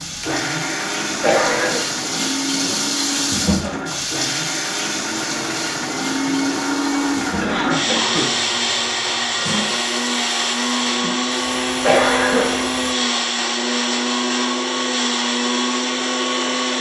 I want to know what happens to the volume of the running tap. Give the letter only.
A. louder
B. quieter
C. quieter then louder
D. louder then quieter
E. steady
B.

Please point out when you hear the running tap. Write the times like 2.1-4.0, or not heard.
0.0-12.9.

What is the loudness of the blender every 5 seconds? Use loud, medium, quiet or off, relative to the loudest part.
medium, loud, loud, loud.